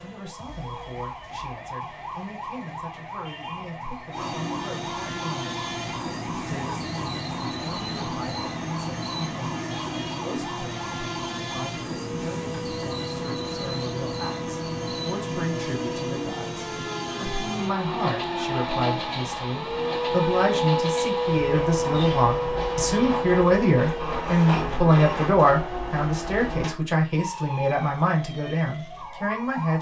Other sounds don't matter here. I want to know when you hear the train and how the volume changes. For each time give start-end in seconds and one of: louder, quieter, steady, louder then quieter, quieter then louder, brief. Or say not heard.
4.1-26.8 steady.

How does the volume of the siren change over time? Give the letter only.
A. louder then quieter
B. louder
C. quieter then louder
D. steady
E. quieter
A.